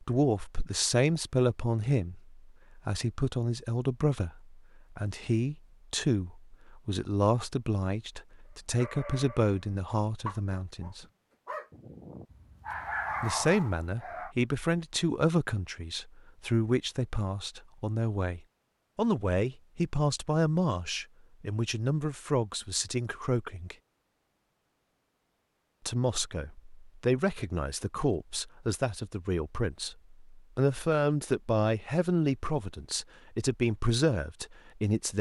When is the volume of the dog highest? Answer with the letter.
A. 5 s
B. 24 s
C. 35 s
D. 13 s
D.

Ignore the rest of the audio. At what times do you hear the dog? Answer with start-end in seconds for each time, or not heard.
8.8-14.3.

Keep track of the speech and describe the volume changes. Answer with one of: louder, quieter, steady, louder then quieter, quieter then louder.
steady.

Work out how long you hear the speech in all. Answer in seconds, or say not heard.
31 s.